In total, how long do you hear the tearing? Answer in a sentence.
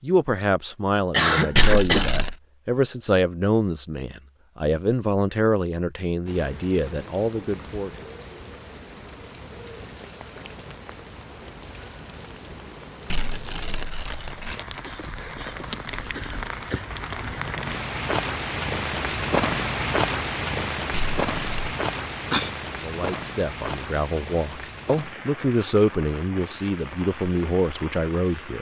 You can hear the tearing for 3 seconds altogether.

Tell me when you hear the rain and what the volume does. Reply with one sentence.
You can hear the rain from 6.2 to 28.5 s, getting louder then quieter.